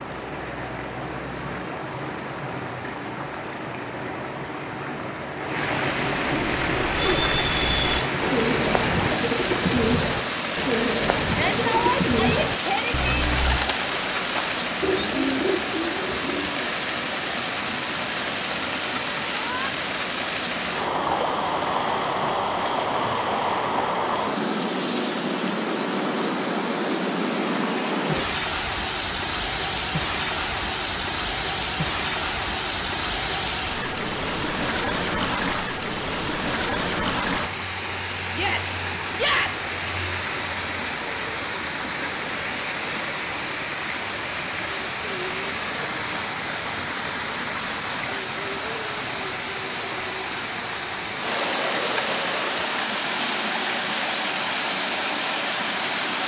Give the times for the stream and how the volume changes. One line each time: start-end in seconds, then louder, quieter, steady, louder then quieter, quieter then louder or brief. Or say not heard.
0.0-56.2 steady.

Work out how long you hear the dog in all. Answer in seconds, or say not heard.
not heard.